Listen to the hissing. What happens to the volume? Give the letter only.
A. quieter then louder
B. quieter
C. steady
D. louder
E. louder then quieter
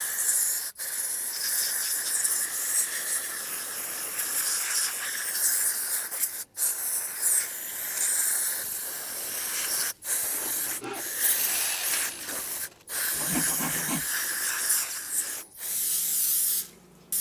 C.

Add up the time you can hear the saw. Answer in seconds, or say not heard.
4 s.